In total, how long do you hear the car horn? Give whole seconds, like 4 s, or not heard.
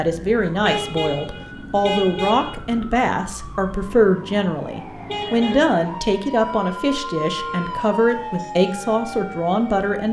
3 s.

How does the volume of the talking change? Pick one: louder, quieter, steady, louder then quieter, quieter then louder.
steady.